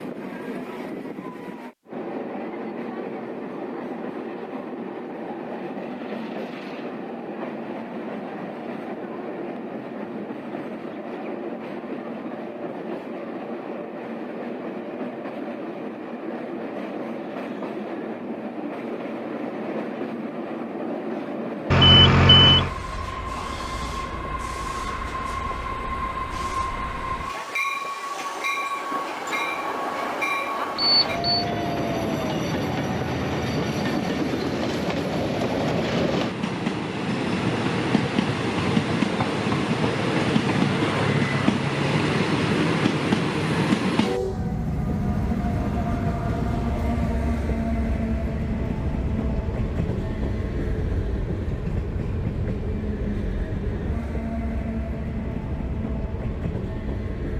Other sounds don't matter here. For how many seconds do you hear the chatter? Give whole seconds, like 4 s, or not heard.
not heard.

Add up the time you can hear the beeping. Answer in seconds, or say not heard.
2 s.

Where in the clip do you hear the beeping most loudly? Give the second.
22 s.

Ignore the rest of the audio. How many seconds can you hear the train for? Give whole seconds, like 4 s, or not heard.
57 s.